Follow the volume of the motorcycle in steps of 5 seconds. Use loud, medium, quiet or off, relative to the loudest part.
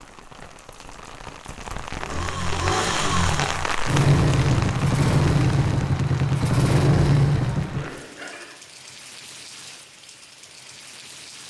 loud, loud, off.